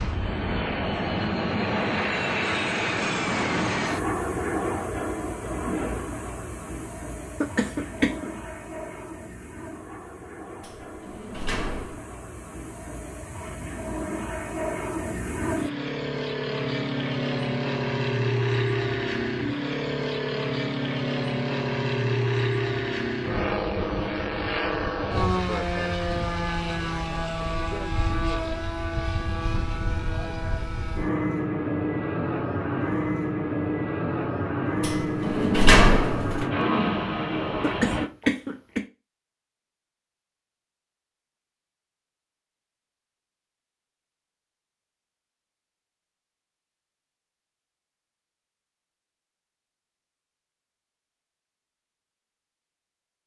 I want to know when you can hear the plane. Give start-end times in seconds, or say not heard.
0.0-38.1.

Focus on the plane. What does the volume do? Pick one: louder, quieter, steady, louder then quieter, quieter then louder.
quieter then louder.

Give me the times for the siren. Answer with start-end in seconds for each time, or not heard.
not heard.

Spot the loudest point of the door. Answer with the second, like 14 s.
36 s.